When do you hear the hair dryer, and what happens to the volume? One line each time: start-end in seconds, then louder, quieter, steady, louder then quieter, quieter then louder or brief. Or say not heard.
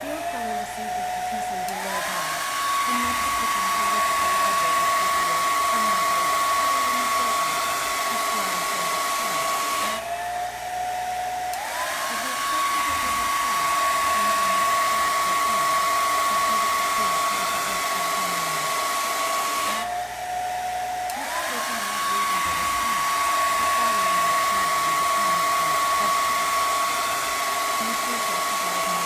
0.0-29.0 steady.